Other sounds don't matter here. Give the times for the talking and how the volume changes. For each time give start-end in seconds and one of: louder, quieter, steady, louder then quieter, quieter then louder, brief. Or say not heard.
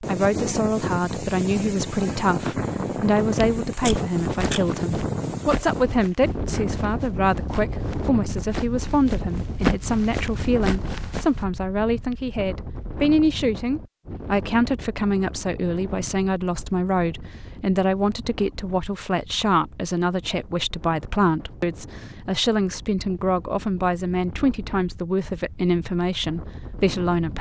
0.0-27.3 steady.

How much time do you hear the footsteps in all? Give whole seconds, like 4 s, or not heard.
8 s.